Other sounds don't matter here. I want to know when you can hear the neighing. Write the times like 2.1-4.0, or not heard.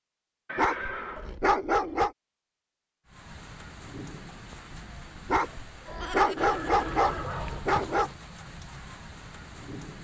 0.5-1.4, 6.3-8.2.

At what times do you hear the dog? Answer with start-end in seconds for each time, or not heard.
0.6-2.1, 5.2-8.1.